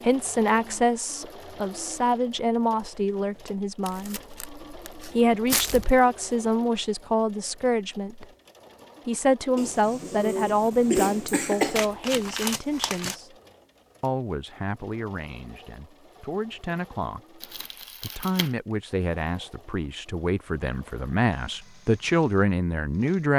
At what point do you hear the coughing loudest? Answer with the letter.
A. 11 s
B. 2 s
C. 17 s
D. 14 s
A.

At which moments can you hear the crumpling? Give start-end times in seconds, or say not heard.
3.8-6.0, 11.8-13.2, 17.4-18.5.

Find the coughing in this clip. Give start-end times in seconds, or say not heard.
9.6-11.8.